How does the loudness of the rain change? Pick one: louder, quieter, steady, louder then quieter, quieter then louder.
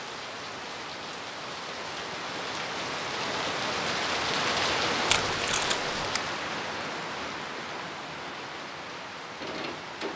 louder then quieter.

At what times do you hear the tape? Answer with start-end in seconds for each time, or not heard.
5.0-6.2.